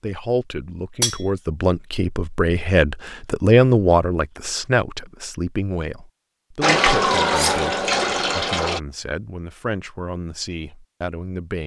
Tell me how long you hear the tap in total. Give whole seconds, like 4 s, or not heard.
2 s.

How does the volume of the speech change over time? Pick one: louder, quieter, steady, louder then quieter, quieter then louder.
louder then quieter.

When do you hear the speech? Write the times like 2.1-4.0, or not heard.
0.0-11.6.